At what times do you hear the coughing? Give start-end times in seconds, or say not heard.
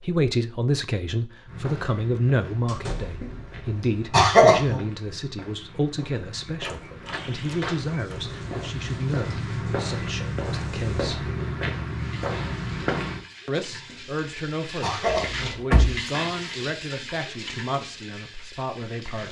3.2-4.8, 13.8-15.8.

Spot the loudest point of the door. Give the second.
16 s.